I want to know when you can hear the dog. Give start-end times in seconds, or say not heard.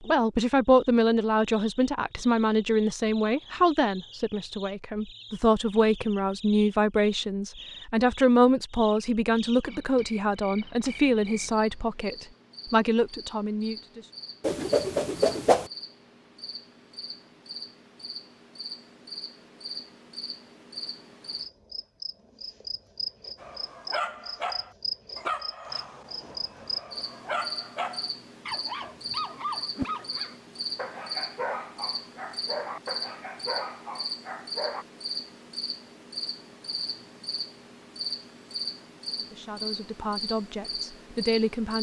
23.4-34.9.